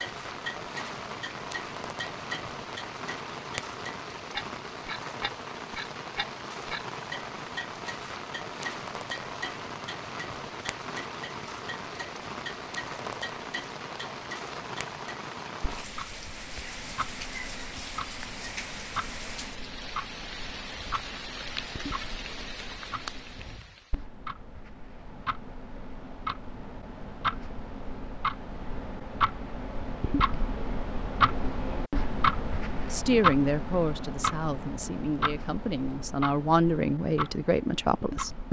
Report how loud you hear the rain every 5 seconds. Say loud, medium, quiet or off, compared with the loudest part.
loud, loud, loud, loud, loud, off, off, off.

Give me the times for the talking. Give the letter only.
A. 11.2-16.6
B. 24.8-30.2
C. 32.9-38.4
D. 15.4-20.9
C.